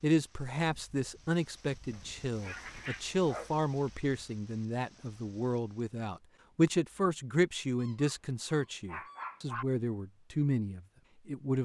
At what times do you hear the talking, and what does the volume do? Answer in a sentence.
The talking can be heard from 0.0 to 11.5 s, at a steady volume.